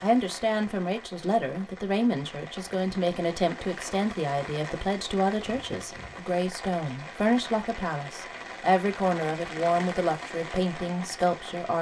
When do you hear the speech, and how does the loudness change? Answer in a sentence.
You can hear the speech from 0.0 to 11.7 s, at a steady volume.